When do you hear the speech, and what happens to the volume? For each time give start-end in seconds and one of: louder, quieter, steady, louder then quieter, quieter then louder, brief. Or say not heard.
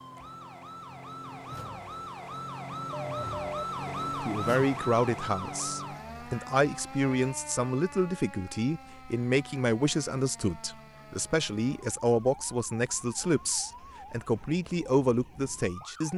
4.0-16.1 steady.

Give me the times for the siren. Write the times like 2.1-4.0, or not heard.
0.0-16.1.